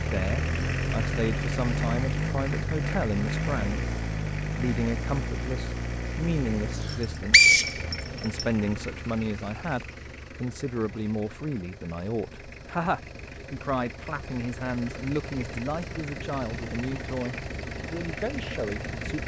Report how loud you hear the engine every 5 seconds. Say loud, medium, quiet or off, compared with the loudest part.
loud, medium, quiet, medium.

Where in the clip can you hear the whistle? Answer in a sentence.
The whistle can be heard from 6.8 to 8.4 s.